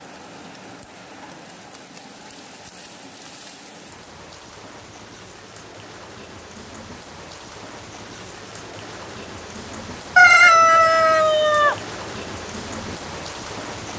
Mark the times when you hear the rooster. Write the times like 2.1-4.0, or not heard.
10.2-11.8.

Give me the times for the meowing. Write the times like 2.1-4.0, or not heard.
not heard.